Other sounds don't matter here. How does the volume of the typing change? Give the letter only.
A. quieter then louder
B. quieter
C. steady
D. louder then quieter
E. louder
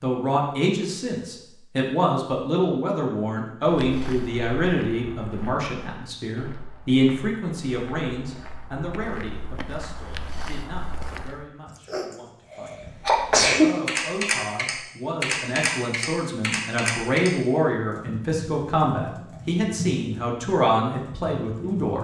B.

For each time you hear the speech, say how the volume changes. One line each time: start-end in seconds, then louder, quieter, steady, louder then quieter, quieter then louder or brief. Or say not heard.
0.0-21.9 quieter then louder.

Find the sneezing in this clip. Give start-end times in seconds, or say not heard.
11.7-13.7.